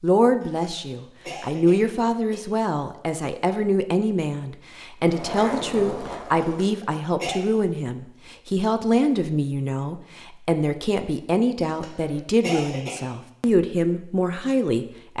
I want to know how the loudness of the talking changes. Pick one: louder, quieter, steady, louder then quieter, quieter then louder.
steady.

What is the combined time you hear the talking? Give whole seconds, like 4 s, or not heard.
15 s.